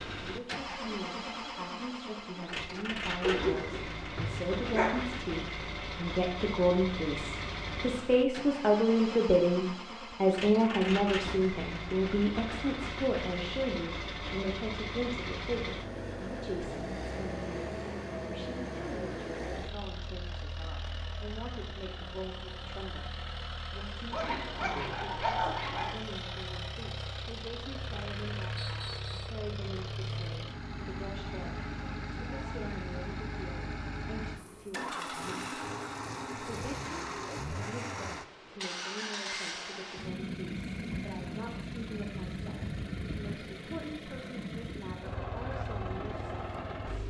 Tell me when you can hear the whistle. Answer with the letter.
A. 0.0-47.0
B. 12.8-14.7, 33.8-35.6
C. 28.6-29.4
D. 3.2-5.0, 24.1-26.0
C.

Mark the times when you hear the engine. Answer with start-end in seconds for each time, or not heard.
0.0-47.0.